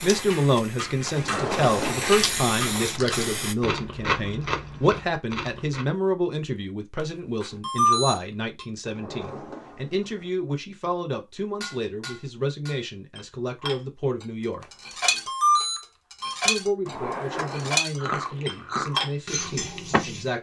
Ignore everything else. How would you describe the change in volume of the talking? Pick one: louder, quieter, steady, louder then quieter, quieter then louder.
quieter.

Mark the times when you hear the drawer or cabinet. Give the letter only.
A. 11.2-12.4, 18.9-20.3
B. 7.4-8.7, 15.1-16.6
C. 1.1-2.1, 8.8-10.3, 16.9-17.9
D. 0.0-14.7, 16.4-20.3
C.